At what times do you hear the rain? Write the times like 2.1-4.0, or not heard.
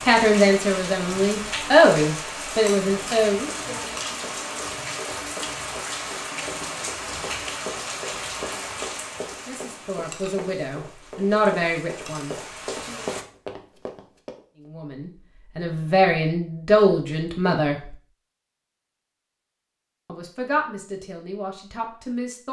0.0-13.2.